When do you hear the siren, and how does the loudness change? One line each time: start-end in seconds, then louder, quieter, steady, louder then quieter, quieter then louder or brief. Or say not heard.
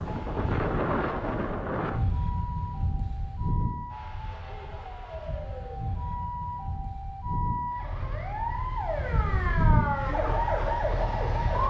0.0-11.6 louder.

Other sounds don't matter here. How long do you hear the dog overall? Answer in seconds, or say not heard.
not heard.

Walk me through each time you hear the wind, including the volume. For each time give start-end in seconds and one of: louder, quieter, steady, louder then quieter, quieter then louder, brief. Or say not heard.
0.0-11.6 quieter then louder.